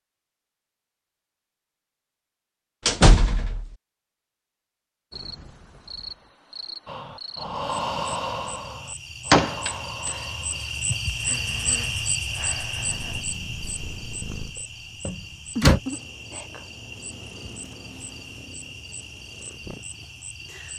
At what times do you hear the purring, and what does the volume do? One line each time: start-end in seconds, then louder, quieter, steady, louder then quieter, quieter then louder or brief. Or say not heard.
12.8-20.7 louder then quieter.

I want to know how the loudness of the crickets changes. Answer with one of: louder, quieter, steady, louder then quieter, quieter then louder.
louder then quieter.